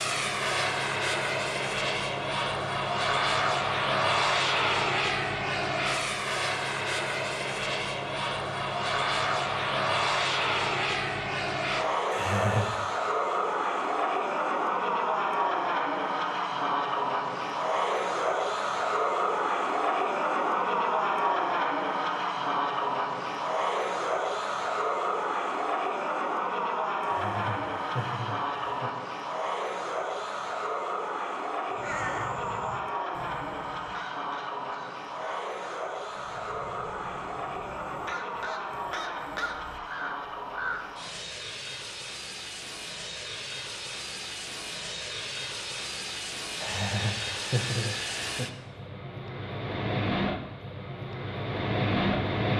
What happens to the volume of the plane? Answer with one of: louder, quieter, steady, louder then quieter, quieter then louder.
quieter.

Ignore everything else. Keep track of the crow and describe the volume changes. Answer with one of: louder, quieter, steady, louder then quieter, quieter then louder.
quieter then louder.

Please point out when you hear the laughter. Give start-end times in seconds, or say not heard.
12.1-12.8, 27.0-28.9, 46.6-48.5.